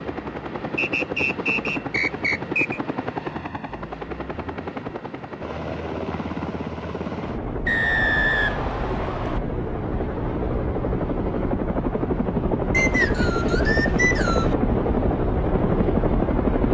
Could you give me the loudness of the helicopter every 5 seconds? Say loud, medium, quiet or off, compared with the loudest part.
medium, medium, loud, loud.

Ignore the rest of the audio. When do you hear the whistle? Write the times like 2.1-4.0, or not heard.
0.8-2.8, 7.7-9.4, 12.7-14.6.